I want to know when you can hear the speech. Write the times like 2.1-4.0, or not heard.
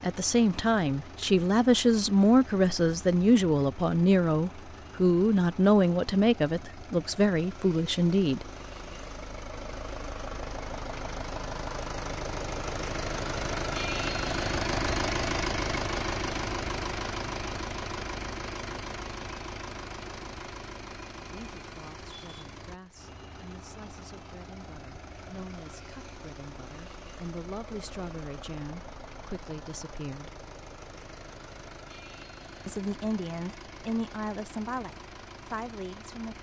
0.0-8.4, 21.1-30.4, 32.6-36.3.